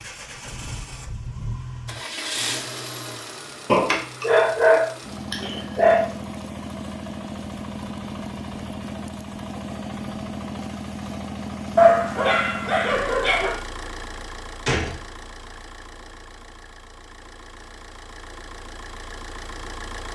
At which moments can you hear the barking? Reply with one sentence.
You can hear the barking from 3.6 to 6.0 s and from 11.8 to 13.6 s.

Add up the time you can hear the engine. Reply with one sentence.
You can hear the engine for 20 seconds altogether.